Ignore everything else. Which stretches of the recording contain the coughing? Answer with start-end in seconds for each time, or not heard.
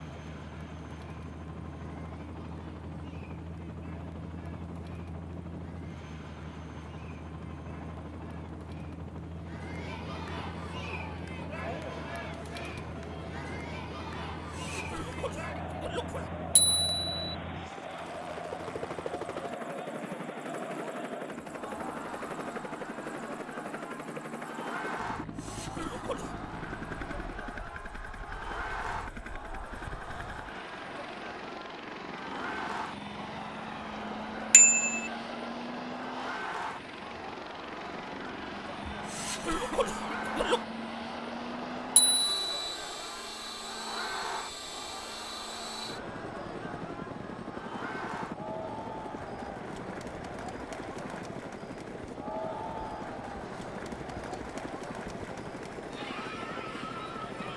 14.3-16.3, 25.2-26.4, 38.9-40.6.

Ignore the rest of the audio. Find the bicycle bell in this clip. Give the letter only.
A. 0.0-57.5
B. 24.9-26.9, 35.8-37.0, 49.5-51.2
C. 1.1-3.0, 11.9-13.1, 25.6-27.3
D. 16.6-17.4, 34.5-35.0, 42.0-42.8
D.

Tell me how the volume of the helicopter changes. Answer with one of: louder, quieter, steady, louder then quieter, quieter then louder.
steady.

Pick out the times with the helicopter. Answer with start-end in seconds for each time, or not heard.
0.0-57.5.